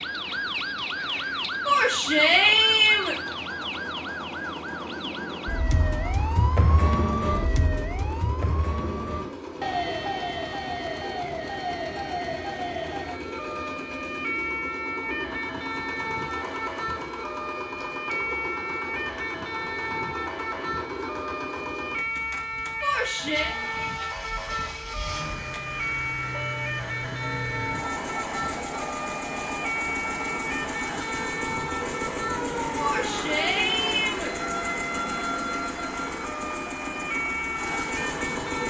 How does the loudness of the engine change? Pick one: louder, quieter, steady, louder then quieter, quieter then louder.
louder.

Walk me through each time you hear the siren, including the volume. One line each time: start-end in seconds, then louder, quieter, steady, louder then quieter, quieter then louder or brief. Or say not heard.
0.0-38.6 steady.